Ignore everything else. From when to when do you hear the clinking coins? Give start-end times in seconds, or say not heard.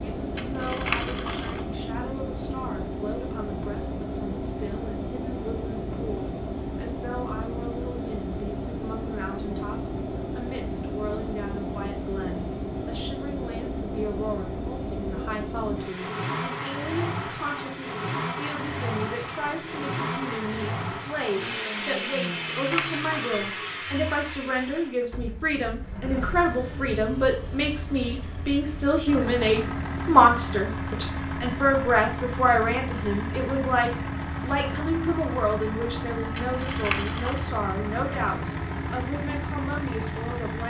0.3-1.6, 22.4-23.4, 36.4-37.5.